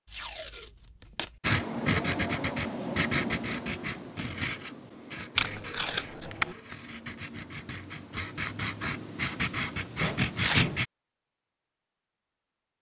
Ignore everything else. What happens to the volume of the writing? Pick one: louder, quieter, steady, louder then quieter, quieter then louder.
quieter then louder.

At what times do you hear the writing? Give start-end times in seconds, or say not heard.
1.4-10.8.